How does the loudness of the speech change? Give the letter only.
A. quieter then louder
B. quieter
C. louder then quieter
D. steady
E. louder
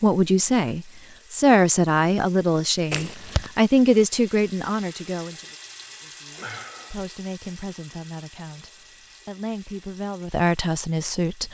A.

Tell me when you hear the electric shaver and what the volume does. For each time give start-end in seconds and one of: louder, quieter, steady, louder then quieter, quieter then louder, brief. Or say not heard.
not heard.